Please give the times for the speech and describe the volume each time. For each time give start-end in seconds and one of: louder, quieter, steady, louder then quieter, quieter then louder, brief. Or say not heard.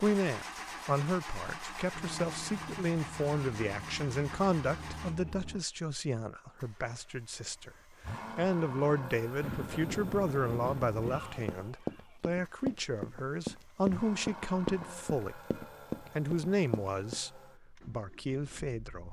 0.0-19.0 steady.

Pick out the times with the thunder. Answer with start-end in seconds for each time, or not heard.
9.4-11.4.